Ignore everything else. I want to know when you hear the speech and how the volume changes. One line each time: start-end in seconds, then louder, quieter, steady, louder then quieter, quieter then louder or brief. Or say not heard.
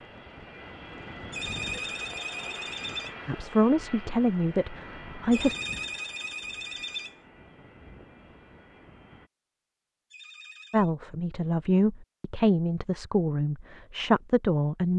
3.2-5.5 brief
10.7-14.9 steady.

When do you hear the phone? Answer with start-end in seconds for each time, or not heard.
1.3-3.1, 5.3-7.2, 10.1-10.9.